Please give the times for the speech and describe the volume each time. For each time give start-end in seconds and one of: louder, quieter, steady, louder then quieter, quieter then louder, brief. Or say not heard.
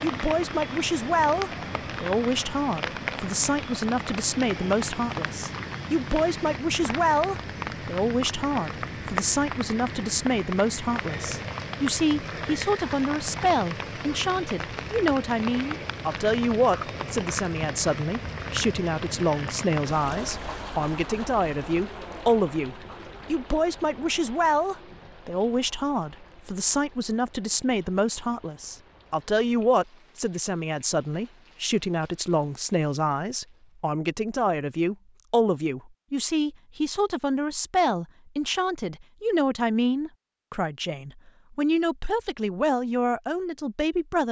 0.0-44.2 steady.